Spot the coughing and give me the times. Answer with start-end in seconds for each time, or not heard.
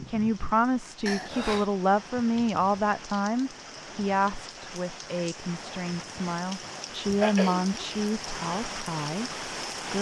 1.1-1.7, 7.2-7.8.